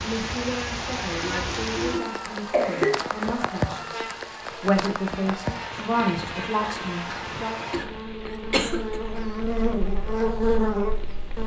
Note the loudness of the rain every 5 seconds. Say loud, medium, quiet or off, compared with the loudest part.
loud, medium, quiet.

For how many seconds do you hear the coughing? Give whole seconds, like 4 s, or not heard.
3 s.